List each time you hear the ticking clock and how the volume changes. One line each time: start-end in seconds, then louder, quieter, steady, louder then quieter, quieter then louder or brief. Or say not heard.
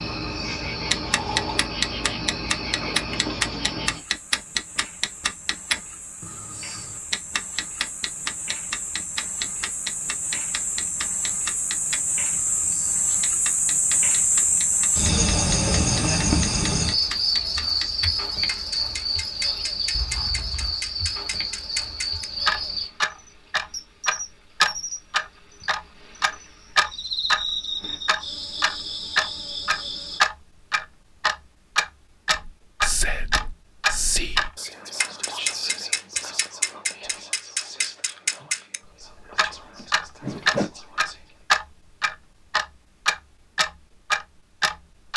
0.0-45.1 quieter then louder.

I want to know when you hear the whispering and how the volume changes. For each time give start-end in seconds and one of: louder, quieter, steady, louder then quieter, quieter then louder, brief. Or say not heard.
32.3-41.5 quieter.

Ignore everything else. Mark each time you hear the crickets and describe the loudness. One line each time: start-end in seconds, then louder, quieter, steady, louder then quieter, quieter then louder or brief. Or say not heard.
0.0-30.2 louder then quieter.